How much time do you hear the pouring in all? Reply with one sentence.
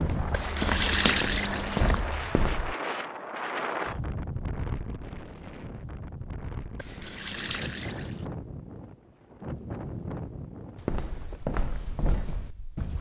The pouring can be heard for 3 seconds in total.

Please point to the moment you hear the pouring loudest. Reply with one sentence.
The volume of the pouring peaks at 1 second.